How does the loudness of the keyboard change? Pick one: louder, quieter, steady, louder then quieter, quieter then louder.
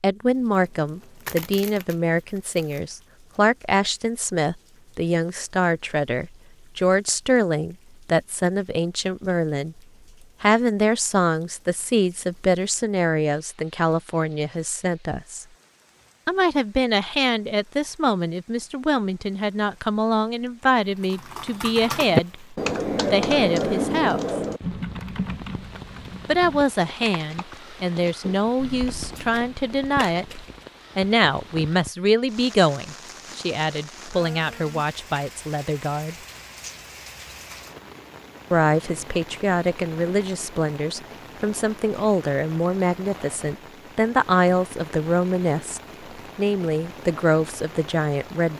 quieter.